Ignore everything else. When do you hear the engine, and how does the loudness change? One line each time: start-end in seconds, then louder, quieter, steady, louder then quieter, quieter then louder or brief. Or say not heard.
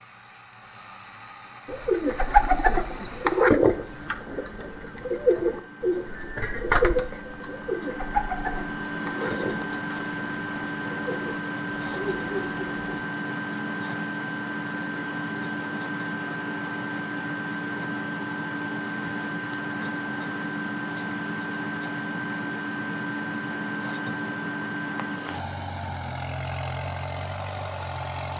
0.0-28.3 louder.